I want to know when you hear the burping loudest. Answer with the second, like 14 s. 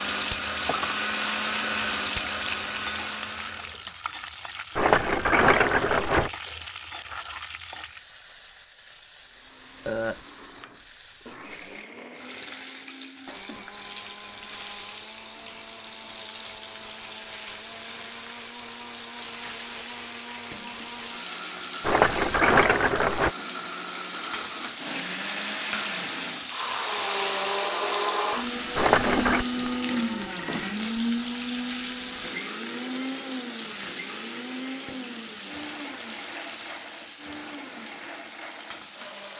10 s.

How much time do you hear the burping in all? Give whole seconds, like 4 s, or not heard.
2 s.